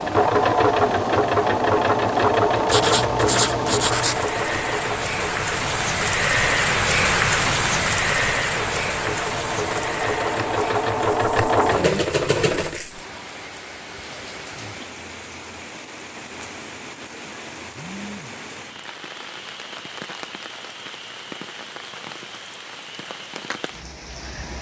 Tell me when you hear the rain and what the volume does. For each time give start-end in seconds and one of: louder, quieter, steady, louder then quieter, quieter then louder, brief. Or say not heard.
0.0-24.5 louder then quieter.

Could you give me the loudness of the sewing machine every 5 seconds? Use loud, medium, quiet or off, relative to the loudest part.
loud, medium, loud, off, off.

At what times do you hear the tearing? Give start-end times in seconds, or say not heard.
not heard.